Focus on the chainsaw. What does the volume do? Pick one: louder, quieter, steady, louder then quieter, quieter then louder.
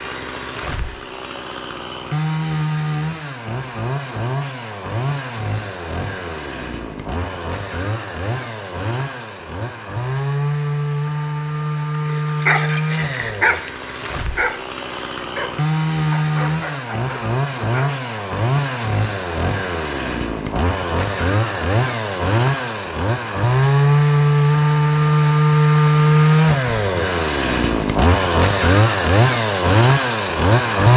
louder.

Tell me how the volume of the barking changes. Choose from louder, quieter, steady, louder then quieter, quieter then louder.
quieter.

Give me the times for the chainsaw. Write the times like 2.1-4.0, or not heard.
0.0-30.9.